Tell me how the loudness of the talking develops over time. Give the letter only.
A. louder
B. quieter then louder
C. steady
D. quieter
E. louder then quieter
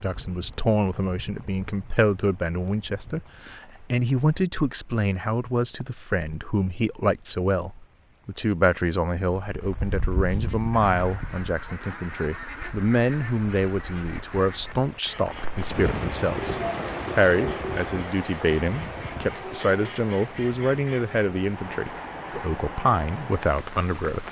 C.